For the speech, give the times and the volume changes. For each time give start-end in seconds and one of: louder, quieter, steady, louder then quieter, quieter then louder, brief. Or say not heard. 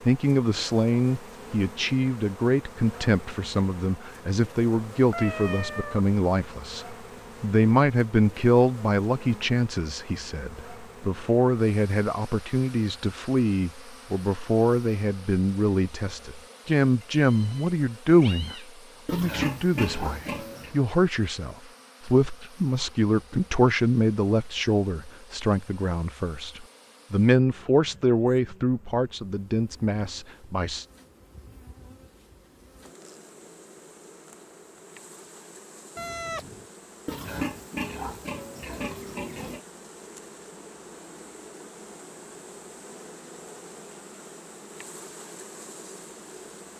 0.1-30.9 steady.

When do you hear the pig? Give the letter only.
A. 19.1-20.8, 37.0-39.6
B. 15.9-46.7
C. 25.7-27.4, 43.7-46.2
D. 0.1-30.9
A.